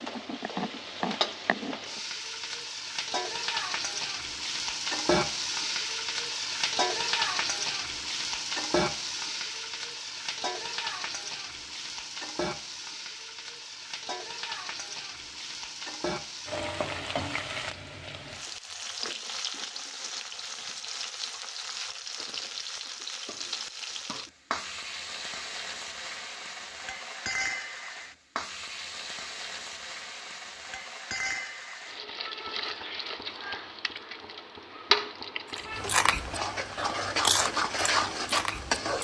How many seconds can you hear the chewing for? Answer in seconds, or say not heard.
3 s.